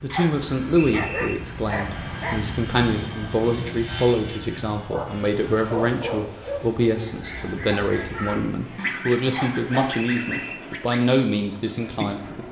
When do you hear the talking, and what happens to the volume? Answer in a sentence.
You can hear the talking from 0.0 to 12.4 s, at a steady volume.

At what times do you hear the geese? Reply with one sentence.
You can hear the geese from 7.0 to 12.4 s.